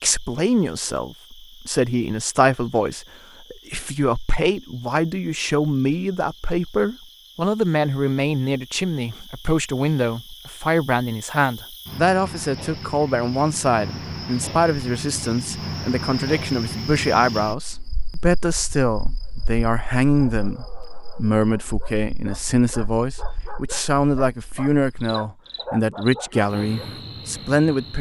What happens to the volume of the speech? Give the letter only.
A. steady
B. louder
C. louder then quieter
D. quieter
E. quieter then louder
A.